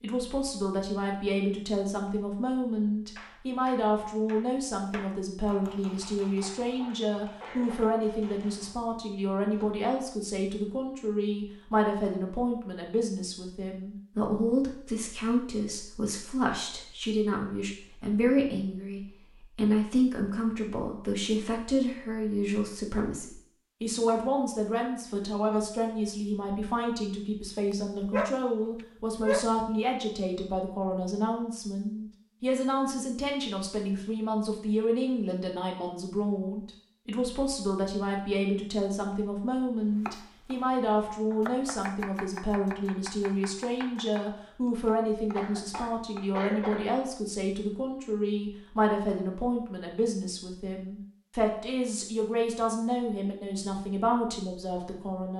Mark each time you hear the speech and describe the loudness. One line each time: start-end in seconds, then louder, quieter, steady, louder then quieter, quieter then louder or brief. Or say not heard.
0.0-55.3 steady.